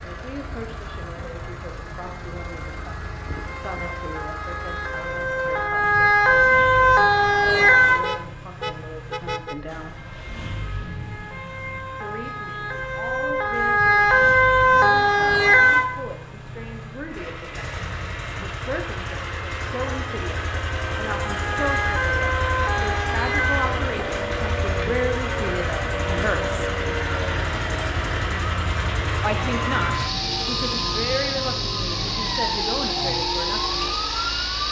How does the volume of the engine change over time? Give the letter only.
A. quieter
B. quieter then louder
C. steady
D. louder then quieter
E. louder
E.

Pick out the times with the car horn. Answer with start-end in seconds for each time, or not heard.
8.0-9.6.